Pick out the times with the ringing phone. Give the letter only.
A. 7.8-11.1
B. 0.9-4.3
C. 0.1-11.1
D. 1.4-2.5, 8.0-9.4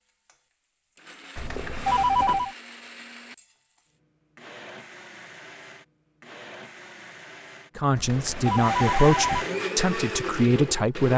D.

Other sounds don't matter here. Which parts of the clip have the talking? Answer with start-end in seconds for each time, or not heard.
7.8-11.1.